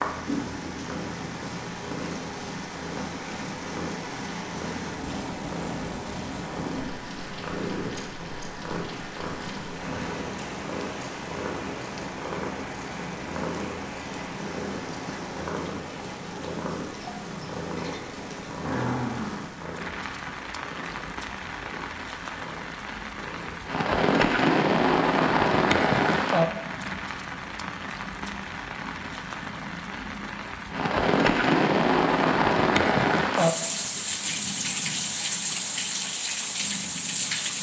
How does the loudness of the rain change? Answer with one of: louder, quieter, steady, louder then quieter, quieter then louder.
louder.